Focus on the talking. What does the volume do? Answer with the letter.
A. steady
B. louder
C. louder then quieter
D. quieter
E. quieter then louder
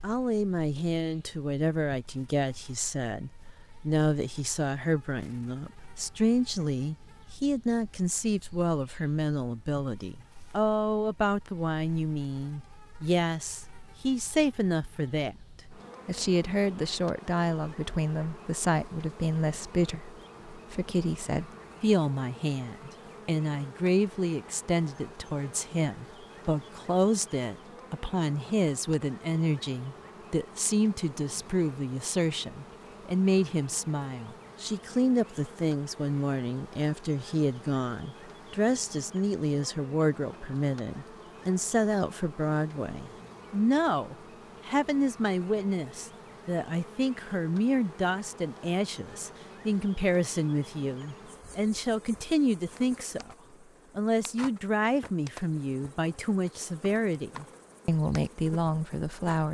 A.